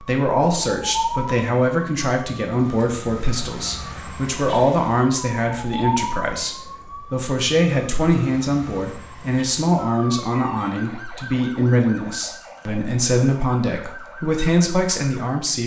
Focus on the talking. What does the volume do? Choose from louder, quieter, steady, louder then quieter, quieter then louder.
steady.